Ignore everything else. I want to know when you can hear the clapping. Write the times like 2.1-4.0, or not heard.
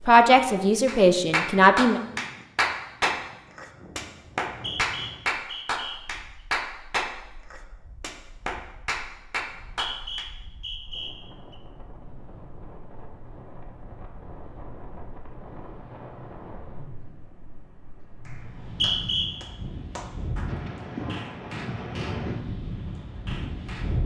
0.8-10.3, 18.2-22.2, 22.9-24.0.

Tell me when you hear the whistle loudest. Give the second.
19 s.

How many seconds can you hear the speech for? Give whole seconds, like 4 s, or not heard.
2 s.